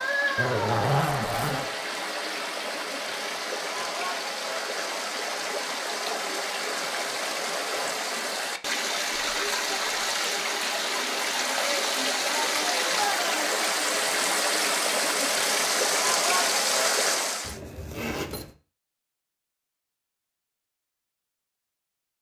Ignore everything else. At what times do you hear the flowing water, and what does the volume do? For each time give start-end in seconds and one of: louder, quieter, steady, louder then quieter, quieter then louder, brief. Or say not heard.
0.0-17.6 louder.